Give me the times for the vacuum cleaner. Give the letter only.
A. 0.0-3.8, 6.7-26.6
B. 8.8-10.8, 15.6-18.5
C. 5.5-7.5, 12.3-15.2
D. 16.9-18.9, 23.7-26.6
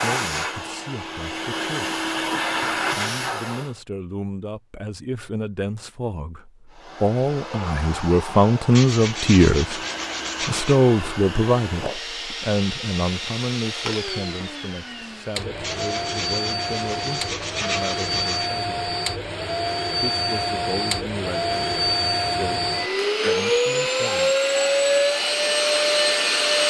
A.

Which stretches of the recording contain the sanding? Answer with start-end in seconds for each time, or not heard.
8.8-10.8, 15.6-18.5.